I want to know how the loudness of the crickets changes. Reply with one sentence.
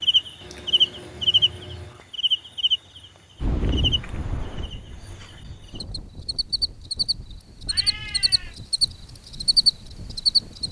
The volume of the crickets goes down, then up.